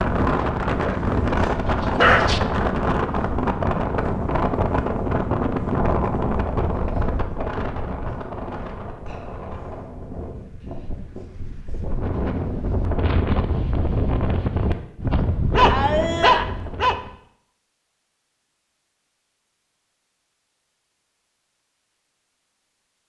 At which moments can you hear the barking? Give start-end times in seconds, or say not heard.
0.4-2.4, 15.6-17.0.